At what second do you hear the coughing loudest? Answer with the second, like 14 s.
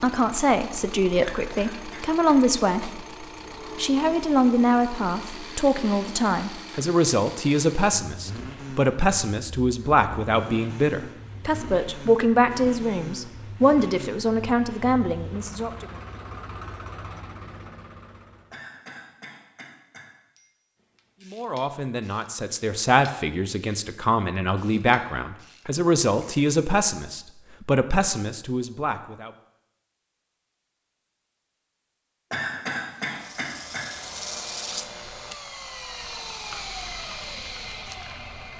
33 s.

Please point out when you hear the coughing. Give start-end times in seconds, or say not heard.
1.4-2.4, 18.5-20.4, 32.3-33.9.